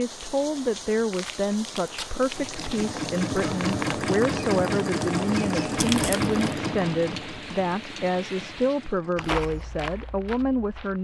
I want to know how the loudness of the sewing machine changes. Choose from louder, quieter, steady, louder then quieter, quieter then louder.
quieter.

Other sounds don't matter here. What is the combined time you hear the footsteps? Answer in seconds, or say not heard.
2 s.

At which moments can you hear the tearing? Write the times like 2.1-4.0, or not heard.
1.1-2.9, 5.8-6.5.